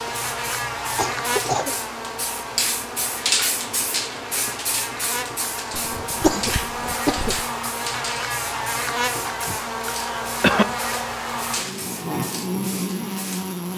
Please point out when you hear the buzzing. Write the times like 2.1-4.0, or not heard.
0.0-13.7.